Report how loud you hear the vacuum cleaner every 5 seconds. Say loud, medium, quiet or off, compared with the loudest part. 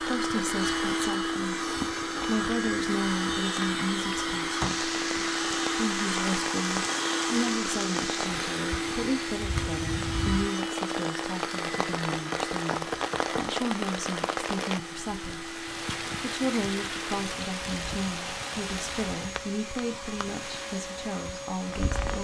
loud, loud, medium, medium, medium.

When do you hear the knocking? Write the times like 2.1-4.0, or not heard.
11.7-13.3.